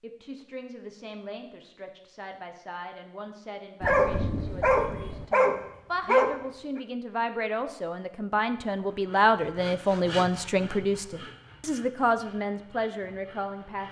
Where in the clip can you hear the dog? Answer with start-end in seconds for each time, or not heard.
3.8-6.3.